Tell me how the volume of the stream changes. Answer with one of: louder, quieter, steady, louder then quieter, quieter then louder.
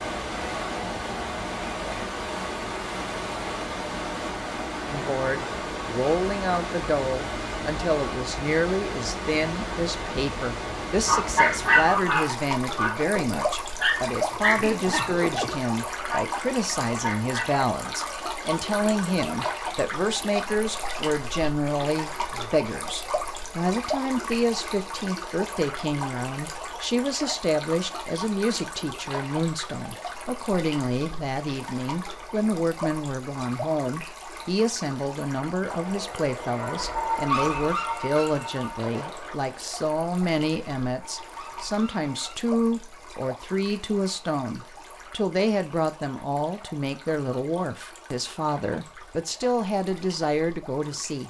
quieter.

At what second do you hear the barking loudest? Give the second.
12 s.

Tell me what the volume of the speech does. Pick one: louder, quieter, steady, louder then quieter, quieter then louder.
steady.